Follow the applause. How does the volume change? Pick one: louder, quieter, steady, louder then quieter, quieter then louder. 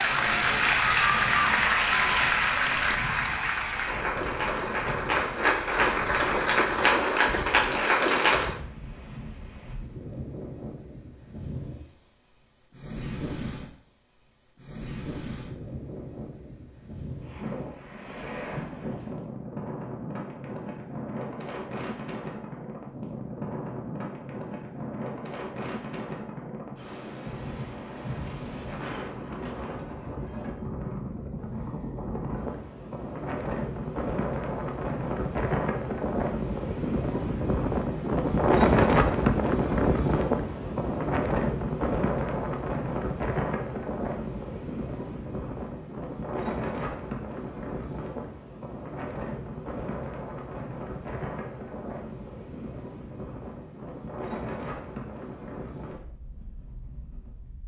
quieter then louder.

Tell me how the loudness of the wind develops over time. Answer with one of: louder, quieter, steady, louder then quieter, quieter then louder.
louder then quieter.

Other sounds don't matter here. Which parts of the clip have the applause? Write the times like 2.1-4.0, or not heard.
0.0-8.6.